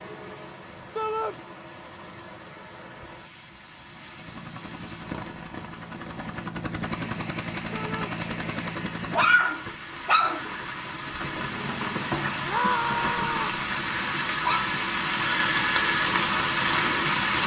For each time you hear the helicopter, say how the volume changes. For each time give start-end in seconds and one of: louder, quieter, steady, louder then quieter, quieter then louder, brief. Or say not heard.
4.2-9.4 louder.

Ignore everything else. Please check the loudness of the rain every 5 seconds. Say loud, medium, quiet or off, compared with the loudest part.
quiet, quiet, medium, loud.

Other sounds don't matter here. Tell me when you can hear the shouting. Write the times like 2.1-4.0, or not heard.
0.9-1.4, 7.7-8.2, 12.4-13.6.